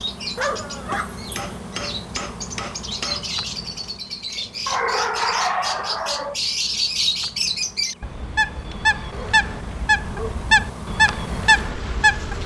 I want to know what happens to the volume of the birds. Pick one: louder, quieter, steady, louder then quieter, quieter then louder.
louder.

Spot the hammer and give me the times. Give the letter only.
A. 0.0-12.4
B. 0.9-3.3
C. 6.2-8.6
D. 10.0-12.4
B.